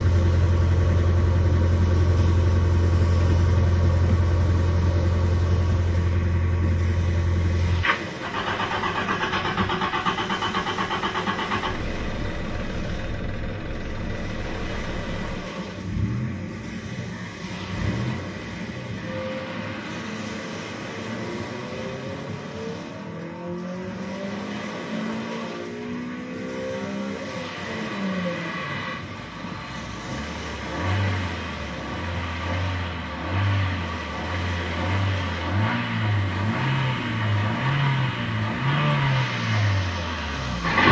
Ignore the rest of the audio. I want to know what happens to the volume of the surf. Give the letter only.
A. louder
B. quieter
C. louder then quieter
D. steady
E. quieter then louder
D.